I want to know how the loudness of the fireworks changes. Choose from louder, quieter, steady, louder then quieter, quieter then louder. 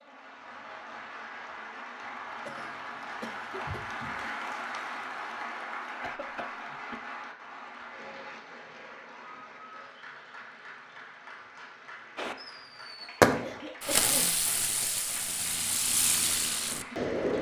quieter.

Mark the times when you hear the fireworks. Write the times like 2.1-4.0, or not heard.
12.2-17.3.